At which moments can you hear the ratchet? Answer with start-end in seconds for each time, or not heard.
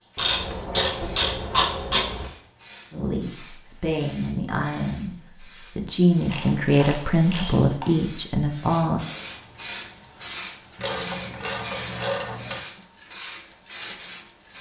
0.1-2.2, 6.3-8.0, 10.8-12.6.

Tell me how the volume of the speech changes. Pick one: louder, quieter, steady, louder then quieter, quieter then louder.
louder.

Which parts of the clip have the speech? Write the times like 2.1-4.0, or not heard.
2.9-9.0.